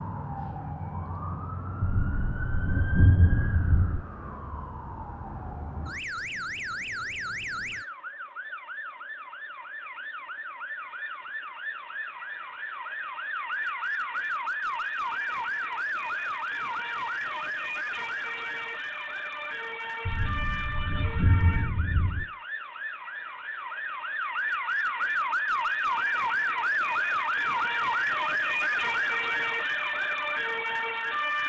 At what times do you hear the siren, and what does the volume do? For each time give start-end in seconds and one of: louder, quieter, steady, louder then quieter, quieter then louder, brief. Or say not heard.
0.0-31.4 louder.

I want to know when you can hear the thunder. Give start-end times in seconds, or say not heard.
1.8-4.0, 20.1-22.2.